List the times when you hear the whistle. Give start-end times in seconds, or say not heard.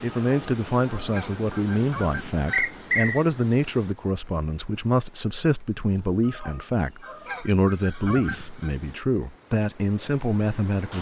2.5-3.2.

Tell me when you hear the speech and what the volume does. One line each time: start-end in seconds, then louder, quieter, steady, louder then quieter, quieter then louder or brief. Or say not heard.
0.0-10.9 steady.